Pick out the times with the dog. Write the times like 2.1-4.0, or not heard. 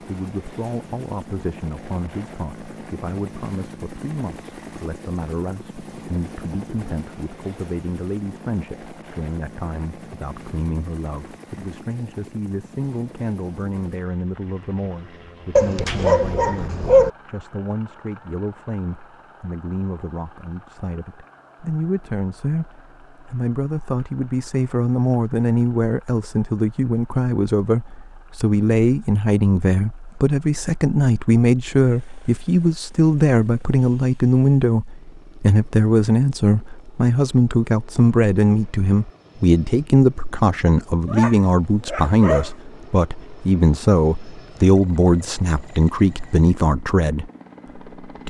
15.6-17.1, 41.0-42.5.